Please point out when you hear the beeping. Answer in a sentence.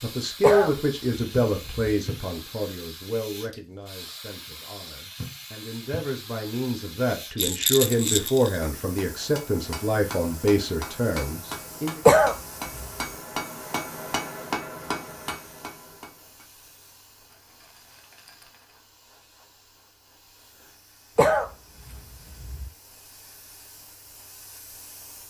The beeping can't be heard in this clip.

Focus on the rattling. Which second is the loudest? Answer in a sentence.
The volume of the rattling peaks at 8 seconds.